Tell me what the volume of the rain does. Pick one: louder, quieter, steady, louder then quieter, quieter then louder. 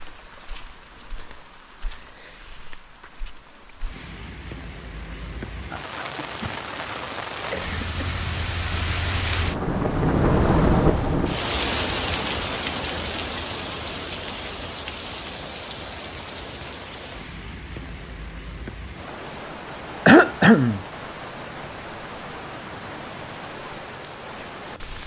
louder then quieter.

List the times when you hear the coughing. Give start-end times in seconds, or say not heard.
7.3-8.2, 20.1-20.8.